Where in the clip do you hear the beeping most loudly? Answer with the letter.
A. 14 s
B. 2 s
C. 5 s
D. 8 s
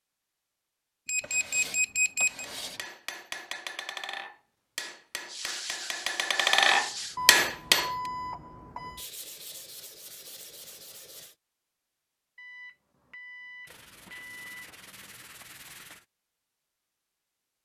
B.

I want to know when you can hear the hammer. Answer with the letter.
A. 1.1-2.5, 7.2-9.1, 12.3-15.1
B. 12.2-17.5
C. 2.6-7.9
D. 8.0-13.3
C.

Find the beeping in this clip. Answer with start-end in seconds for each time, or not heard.
1.1-2.5, 7.2-9.1, 12.3-15.1.